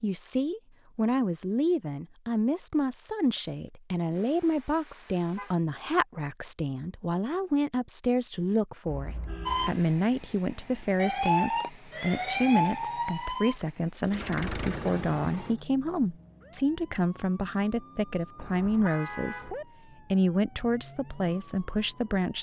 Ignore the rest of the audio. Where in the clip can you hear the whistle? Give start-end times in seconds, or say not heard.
not heard.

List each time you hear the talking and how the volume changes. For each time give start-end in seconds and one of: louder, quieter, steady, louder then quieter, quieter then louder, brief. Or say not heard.
0.0-22.3 steady.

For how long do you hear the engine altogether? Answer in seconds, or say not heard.
2 s.